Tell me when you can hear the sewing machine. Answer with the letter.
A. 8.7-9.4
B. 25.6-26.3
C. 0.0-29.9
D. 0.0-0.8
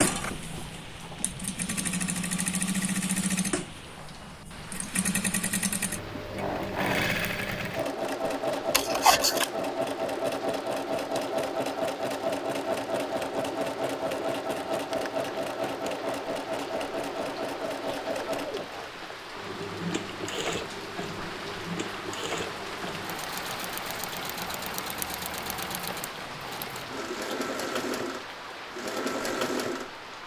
C.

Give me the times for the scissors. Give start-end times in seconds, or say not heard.
8.7-9.4.